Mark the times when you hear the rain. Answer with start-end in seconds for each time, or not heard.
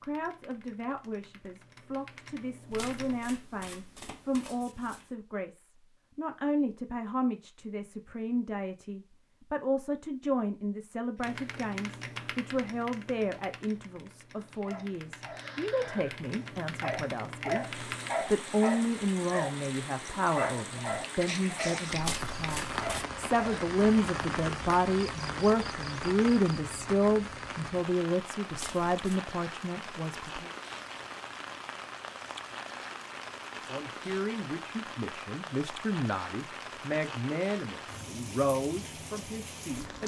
17.6-40.0.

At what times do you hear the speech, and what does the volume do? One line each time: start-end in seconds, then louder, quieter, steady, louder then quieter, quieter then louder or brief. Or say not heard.
0.0-30.5 louder
33.6-40.0 steady.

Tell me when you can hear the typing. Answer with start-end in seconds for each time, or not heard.
0.0-3.2, 11.2-18.1.